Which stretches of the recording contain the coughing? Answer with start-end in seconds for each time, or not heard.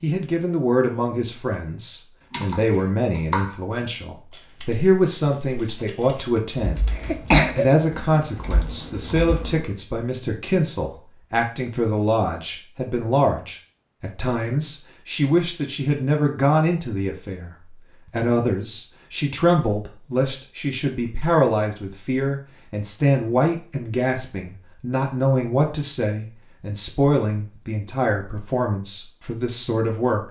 6.9-7.8.